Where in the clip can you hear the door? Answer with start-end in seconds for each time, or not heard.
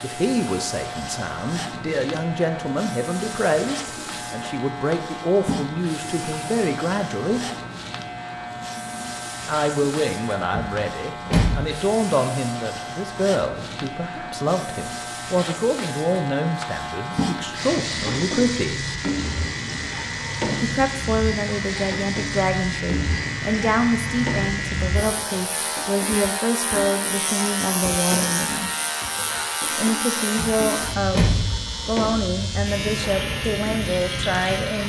10.5-11.7, 30.4-31.6.